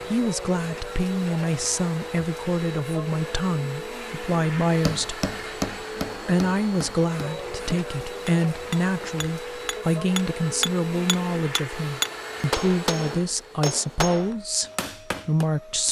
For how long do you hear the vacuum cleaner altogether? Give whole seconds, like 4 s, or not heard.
16 s.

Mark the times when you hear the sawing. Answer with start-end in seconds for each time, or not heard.
not heard.